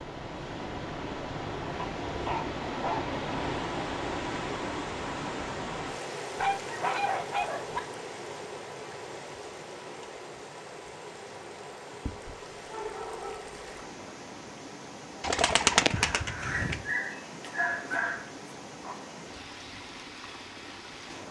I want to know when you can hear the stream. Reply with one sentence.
You can hear the stream from 0.0 to 21.2 s.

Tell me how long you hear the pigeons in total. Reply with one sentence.
The pigeons can be heard for 2 seconds in total.